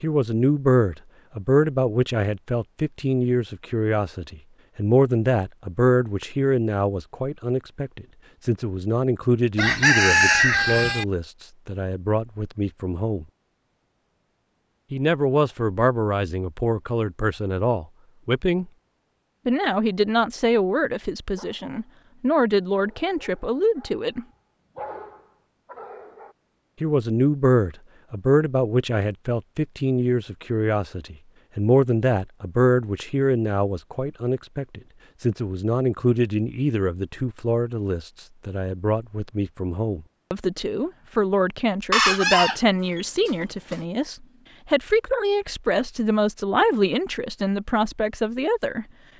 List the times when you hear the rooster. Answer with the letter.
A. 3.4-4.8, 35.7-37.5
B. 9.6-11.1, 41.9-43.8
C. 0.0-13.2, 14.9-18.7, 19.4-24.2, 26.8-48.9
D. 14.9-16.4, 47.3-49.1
B.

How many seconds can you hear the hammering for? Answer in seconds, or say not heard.
not heard.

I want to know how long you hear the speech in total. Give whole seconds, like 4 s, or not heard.
44 s.